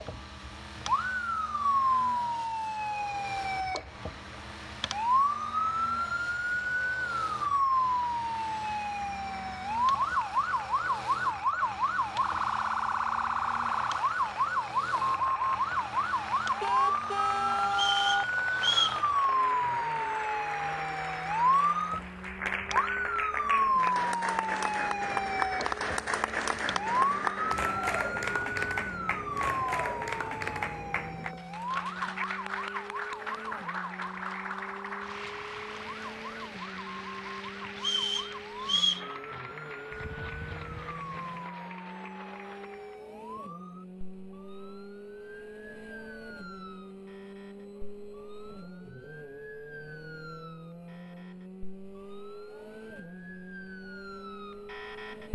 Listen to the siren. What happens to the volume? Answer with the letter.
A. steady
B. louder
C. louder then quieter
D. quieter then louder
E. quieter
E.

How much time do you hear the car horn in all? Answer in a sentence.
You can hear the car horn for 3 seconds altogether.